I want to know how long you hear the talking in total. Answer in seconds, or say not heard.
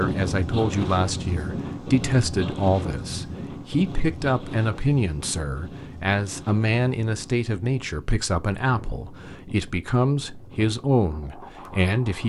12 s.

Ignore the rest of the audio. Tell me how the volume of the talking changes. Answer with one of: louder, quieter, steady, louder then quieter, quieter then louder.
steady.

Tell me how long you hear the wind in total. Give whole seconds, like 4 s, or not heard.
12 s.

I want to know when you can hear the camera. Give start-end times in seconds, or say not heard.
not heard.